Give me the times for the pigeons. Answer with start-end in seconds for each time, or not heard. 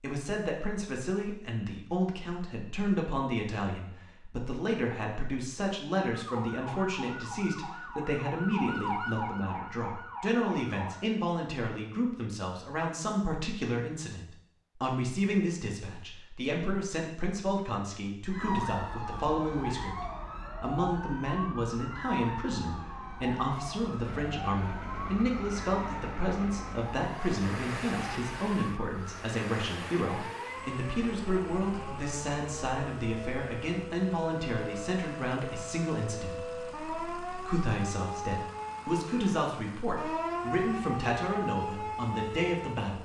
not heard.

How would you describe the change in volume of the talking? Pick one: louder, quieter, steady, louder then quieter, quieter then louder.
steady.